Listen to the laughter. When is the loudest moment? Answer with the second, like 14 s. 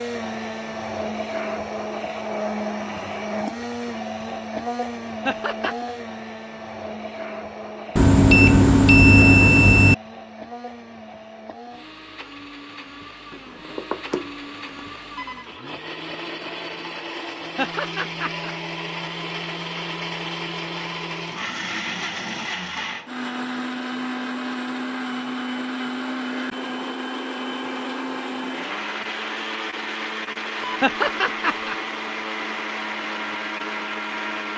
31 s.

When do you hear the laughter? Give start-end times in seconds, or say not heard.
5.2-5.9, 17.6-18.6, 30.8-31.8.